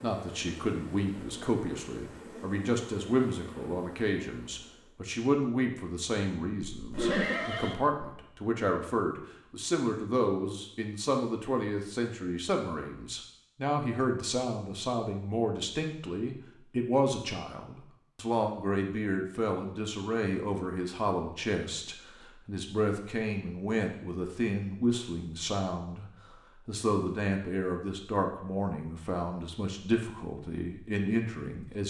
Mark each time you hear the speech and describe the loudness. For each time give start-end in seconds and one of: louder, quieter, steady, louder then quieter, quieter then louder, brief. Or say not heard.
0.0-31.8 steady.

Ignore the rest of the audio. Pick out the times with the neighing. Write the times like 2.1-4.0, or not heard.
6.8-8.1.